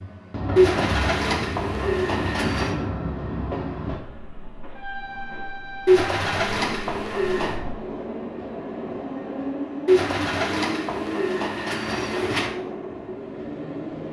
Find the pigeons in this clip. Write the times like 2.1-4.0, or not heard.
0.6-2.8, 5.8-7.6, 9.8-12.6.